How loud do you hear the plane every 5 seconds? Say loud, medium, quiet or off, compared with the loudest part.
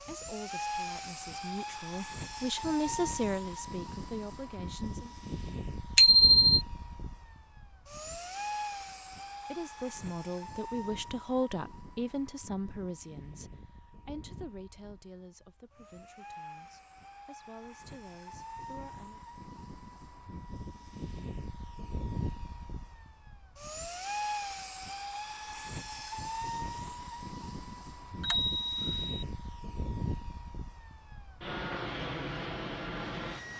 loud, loud, medium, medium, loud, loud, loud.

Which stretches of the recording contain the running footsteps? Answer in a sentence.
The running footsteps can't be heard in this clip.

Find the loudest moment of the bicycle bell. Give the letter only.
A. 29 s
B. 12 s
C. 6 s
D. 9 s
C.